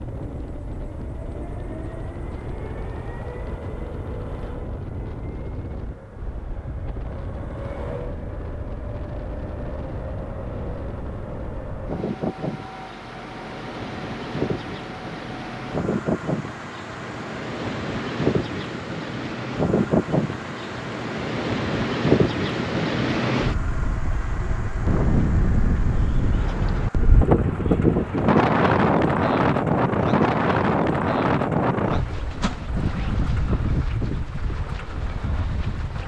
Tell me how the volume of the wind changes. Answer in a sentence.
The volume of the wind goes up.